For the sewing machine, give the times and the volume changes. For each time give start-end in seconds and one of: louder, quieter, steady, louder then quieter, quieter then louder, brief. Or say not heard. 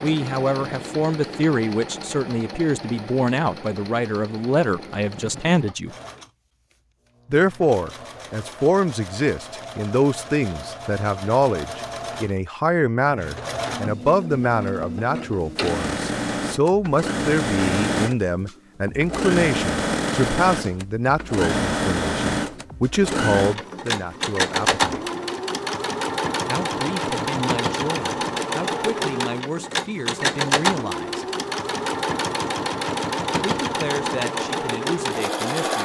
0.0-35.8 louder.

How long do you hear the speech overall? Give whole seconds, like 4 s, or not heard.
31 s.